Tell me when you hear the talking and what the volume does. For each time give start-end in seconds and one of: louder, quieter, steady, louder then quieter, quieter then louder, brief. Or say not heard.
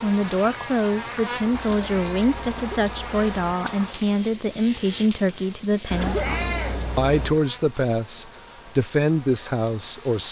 0.0-10.2 steady.